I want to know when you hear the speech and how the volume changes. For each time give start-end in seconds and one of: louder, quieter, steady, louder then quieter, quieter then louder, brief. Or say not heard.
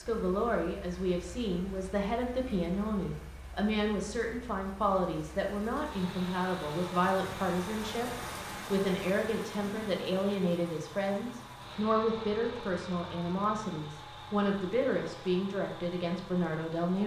0.0-17.0 steady.